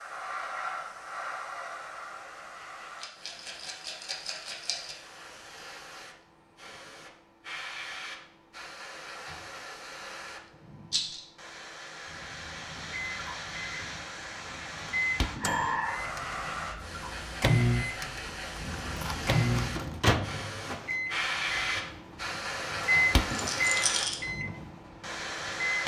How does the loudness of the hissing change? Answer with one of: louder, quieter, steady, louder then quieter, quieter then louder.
louder.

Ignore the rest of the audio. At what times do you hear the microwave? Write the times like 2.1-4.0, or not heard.
12.8-25.8.